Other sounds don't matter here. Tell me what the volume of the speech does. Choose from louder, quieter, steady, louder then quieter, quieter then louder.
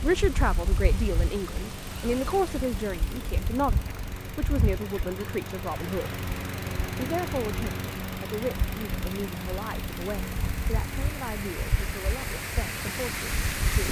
quieter.